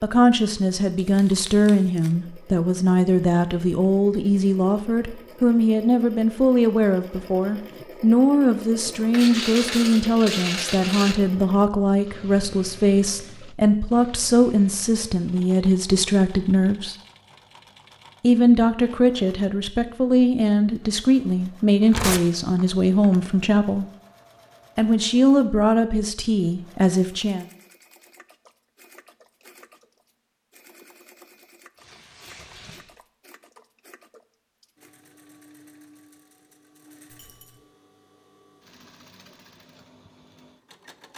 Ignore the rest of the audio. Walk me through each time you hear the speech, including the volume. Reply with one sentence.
You can hear the speech from 0.0 to 16.9 s, at a steady volume; from 18.2 to 23.9 s, at a steady volume; and briefly from 24.8 to 27.4 s.